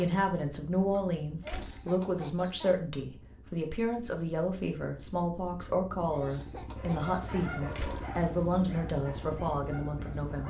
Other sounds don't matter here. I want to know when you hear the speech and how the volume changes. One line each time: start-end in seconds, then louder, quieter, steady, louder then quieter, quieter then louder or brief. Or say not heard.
0.0-10.4 steady.